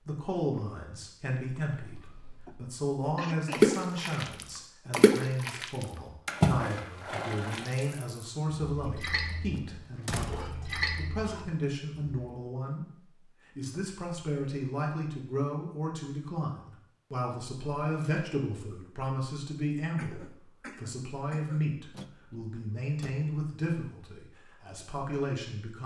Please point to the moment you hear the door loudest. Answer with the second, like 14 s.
10 s.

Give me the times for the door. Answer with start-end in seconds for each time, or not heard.
9.5-10.7, 21.9-23.2.